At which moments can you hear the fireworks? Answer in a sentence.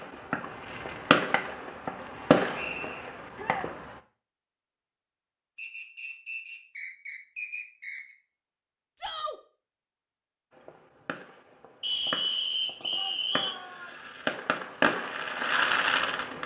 You can hear the fireworks from 0.0 to 4.0 s and from 10.5 to 16.4 s.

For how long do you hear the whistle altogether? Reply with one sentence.
The whistle can be heard for 5 seconds in total.